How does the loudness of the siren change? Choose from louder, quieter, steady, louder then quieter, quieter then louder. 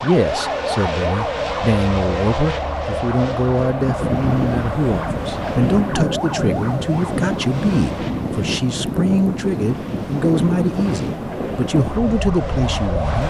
quieter then louder.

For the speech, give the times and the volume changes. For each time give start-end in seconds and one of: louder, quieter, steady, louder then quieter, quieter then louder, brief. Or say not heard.
0.0-13.2 steady.